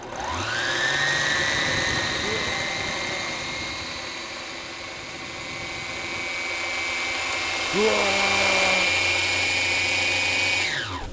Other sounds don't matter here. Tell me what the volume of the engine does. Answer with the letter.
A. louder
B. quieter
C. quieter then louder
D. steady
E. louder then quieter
C.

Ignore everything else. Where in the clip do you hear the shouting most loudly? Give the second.
8 s.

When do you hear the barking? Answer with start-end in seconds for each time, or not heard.
not heard.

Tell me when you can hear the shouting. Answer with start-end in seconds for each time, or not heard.
2.2-3.5, 7.7-8.9.